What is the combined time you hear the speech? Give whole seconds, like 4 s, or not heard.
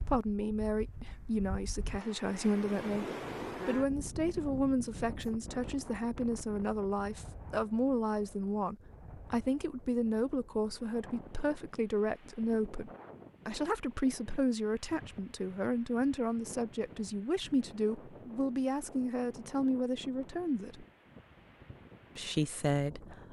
21 s.